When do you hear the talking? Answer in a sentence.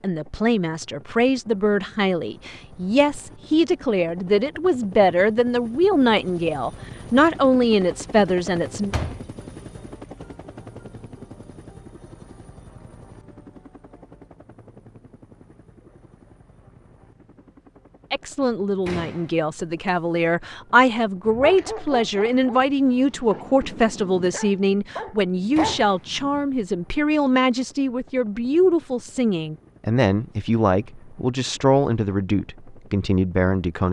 The talking can be heard from 0.0 to 8.9 s and from 18.1 to 33.8 s.